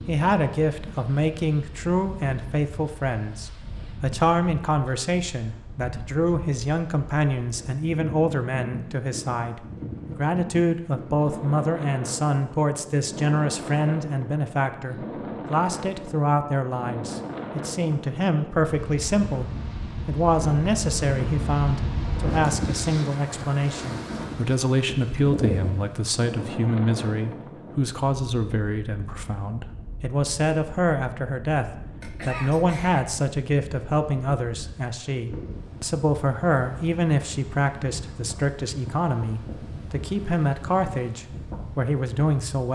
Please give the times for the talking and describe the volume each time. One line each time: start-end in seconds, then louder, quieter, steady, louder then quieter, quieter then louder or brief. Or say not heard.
0.1-42.7 steady.